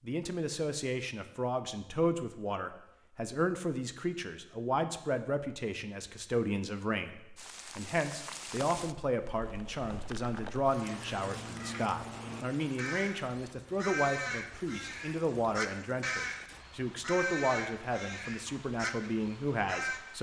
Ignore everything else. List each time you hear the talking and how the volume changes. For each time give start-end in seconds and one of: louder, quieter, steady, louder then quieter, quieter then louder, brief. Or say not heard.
0.1-20.1 steady.